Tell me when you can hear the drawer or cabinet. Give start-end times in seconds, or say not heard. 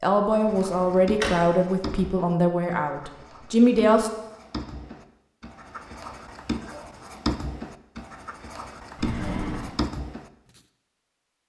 0.7-1.4, 8.9-9.7.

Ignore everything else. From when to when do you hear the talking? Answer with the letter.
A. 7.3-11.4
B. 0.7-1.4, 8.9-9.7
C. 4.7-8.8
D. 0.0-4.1
D.